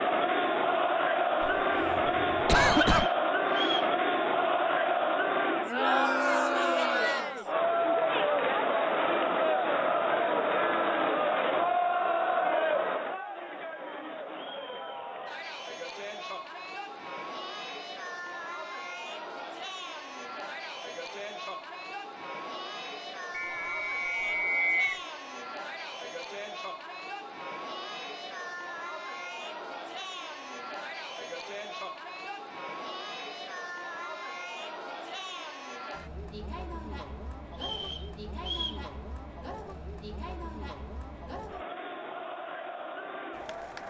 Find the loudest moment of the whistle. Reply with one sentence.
The volume of the whistle peaks at 25 seconds.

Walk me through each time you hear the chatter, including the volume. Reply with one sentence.
The chatter can be heard from 0.0 to 43.8 s, getting quieter.